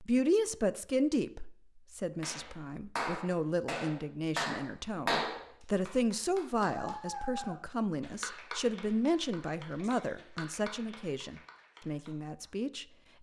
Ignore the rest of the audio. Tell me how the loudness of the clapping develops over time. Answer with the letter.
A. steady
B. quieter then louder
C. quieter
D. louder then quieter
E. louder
C.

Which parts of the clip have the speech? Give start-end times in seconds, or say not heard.
0.0-12.8.